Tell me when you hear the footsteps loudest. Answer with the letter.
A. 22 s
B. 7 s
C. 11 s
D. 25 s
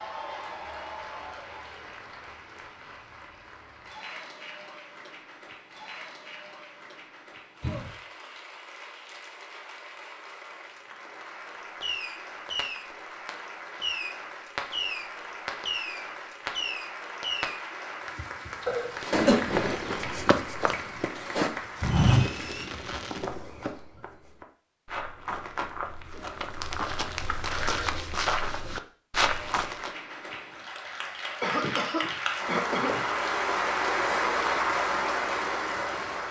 A.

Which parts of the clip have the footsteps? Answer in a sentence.
You can hear the footsteps from 19.4 to 29.9 s.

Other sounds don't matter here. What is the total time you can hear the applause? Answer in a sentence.
The applause can be heard for 30 seconds in total.